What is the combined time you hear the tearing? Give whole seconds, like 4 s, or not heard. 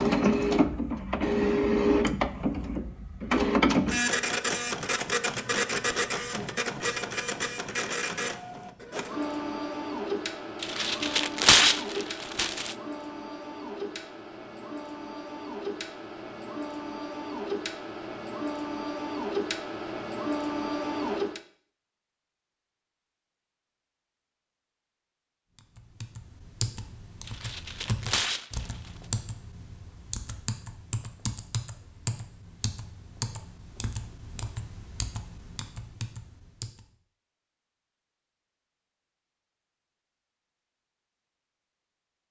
4 s.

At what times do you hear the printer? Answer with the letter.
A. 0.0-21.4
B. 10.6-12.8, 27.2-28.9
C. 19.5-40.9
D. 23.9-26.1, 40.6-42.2
A.